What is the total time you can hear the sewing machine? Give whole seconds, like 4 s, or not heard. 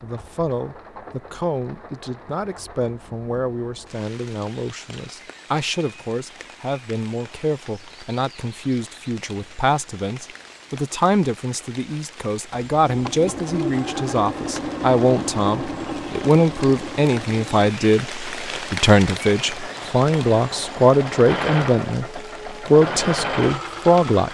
11 s.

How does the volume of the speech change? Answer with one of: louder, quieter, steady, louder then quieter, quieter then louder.
louder.